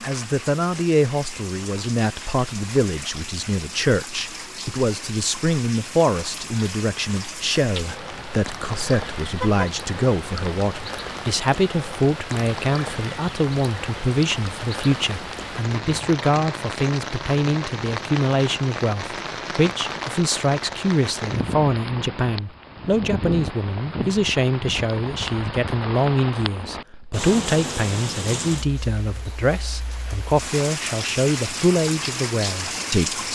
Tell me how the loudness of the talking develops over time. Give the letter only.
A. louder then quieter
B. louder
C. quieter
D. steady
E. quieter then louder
D.